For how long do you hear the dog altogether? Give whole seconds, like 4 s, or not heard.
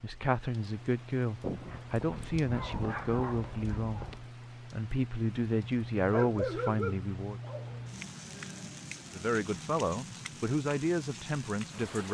5 s.